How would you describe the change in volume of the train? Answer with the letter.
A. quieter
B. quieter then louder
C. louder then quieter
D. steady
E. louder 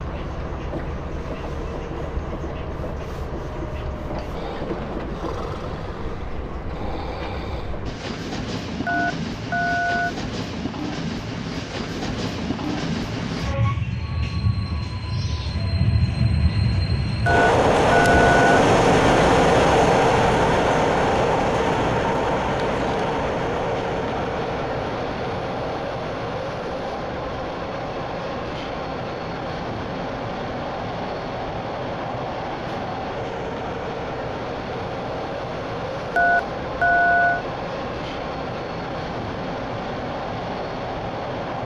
C.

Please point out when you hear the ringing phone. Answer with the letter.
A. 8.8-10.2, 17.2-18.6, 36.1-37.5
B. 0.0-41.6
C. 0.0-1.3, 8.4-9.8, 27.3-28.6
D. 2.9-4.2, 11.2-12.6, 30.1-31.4
A.